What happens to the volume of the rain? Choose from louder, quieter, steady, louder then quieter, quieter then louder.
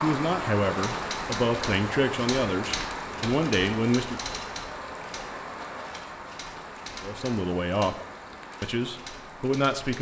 quieter.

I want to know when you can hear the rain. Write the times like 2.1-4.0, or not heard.
0.0-9.9.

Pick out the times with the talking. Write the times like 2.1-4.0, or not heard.
0.0-4.2, 7.0-8.0, 8.6-9.9.